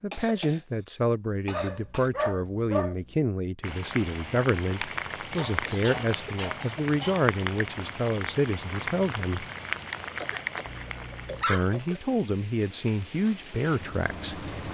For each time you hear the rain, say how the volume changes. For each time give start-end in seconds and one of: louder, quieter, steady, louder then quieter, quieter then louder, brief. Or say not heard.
3.6-14.7 quieter.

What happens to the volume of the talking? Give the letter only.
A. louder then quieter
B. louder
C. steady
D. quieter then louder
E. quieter
C.